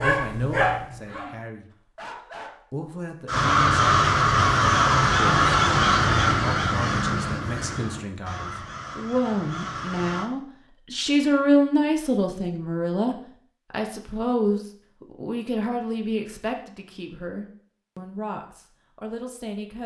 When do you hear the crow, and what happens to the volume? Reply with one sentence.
You can hear the crow from 3.2 to 10.3 s, getting quieter.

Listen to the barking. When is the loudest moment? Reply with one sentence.
The volume of the barking peaks at 1 second.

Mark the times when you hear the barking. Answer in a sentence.
The barking can be heard from 0.0 to 2.6 s.